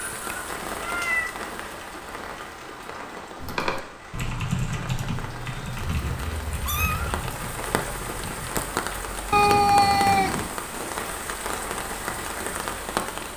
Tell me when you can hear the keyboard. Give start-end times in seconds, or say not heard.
3.4-8.5.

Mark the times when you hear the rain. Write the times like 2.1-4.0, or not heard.
0.0-13.3.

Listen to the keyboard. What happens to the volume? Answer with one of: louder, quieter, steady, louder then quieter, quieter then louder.
quieter.